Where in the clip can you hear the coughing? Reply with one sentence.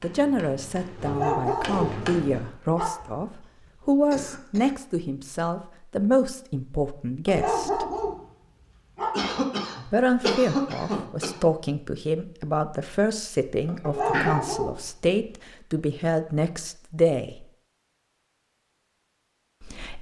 You can hear the coughing from 3.6 to 4.8 s, from 9.1 to 11.4 s and from 13.7 to 14.3 s.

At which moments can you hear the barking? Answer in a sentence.
The barking can be heard from 1.1 to 2.0 s, from 2.8 to 3.2 s, from 7.2 to 9.3 s and from 13.8 to 14.8 s.